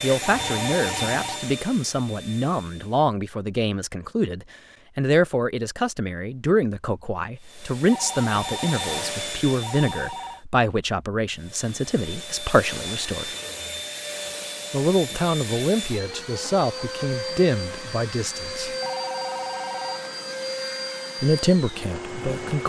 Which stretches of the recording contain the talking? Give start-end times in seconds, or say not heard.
0.0-13.3, 14.7-18.7, 21.2-22.6.